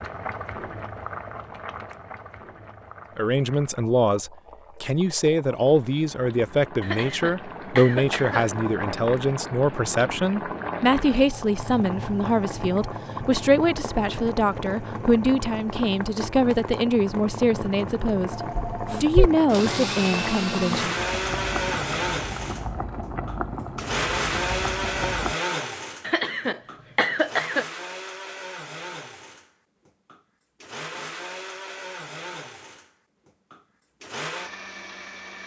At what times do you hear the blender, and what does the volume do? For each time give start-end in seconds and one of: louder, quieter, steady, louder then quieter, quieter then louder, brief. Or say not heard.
18.9-35.4 quieter.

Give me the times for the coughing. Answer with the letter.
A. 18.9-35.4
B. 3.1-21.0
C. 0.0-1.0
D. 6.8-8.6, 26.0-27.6
D.